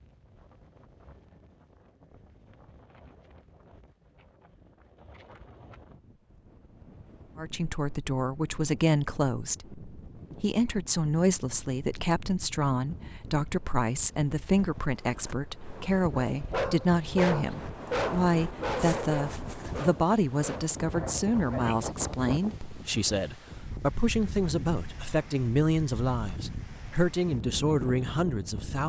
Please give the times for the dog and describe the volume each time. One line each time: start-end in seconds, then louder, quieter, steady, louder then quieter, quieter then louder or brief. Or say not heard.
16.2-21.8 quieter.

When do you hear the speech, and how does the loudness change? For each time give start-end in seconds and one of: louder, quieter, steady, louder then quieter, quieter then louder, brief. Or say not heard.
7.3-28.8 steady.